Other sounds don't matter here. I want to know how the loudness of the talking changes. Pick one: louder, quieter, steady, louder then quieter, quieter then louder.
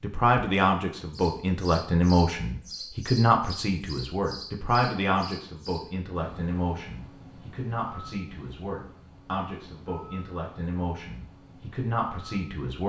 quieter.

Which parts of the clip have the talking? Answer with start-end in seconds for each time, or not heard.
0.0-12.8.